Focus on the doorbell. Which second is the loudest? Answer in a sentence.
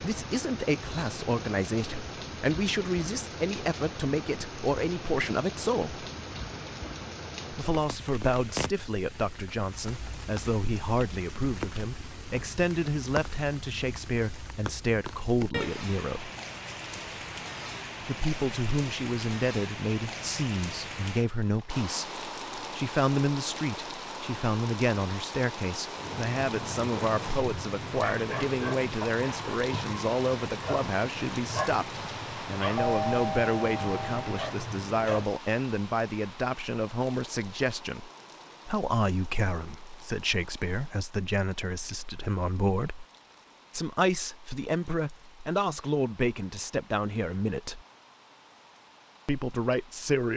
The volume of the doorbell peaks at 33 seconds.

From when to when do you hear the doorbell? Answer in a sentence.
The doorbell can be heard from 32.8 to 34.2 s.